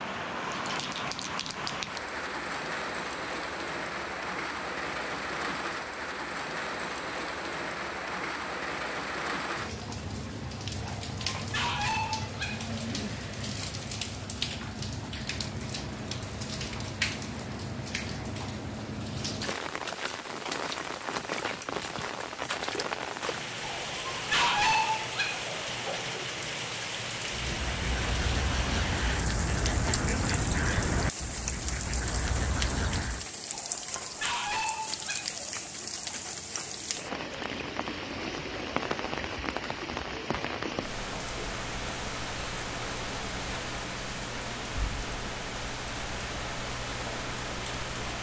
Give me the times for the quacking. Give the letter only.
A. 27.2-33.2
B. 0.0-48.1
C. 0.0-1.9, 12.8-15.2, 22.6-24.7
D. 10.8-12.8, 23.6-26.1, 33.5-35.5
A.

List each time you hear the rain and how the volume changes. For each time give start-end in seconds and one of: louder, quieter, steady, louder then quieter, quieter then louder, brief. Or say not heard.
0.0-48.1 steady.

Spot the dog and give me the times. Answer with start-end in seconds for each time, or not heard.
10.8-12.8, 23.6-26.1, 33.5-35.5.